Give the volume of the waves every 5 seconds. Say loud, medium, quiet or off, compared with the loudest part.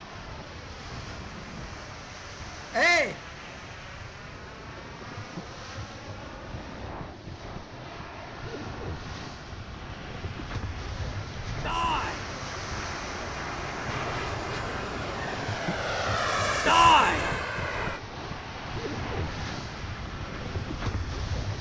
medium, medium, loud, loud, loud.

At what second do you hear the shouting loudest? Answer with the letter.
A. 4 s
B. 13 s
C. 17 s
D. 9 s
C.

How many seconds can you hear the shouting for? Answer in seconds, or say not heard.
2 s.